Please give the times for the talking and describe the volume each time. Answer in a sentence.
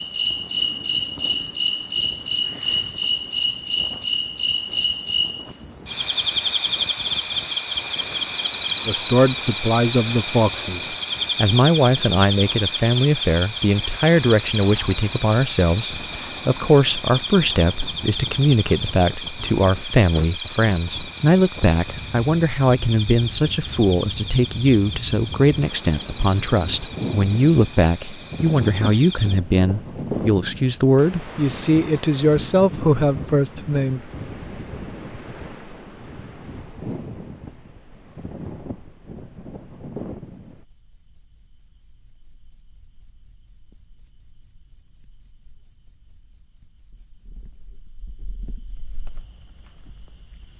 The talking can be heard from 8.8 to 34.0 s, at a steady volume.